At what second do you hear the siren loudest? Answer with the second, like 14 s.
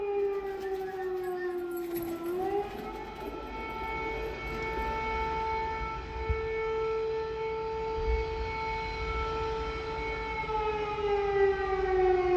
12 s.